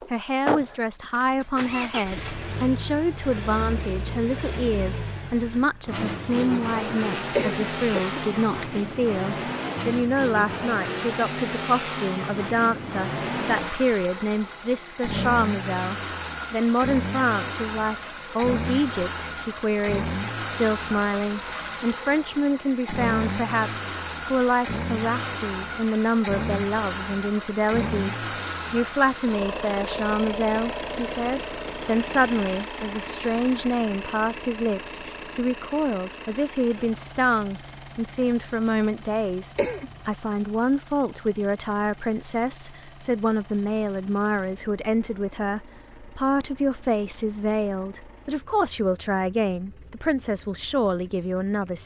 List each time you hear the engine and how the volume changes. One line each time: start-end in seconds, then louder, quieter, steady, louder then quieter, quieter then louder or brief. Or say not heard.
0.0-51.8 quieter.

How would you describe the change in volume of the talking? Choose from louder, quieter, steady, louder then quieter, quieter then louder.
steady.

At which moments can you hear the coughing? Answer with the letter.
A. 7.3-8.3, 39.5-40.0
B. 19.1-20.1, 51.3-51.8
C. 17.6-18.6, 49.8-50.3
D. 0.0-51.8
A.